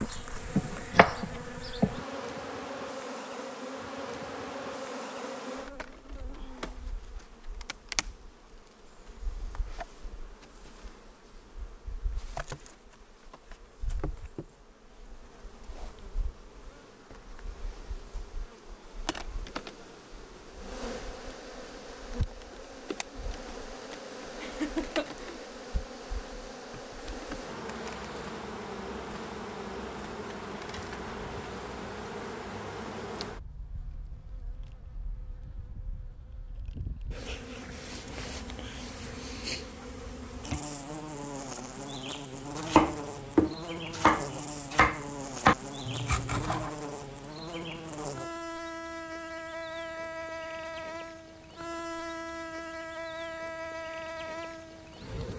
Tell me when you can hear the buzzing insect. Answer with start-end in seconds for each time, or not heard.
0.0-55.3.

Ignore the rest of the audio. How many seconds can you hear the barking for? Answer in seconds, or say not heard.
not heard.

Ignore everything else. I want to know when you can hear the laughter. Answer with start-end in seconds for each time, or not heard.
24.4-25.4.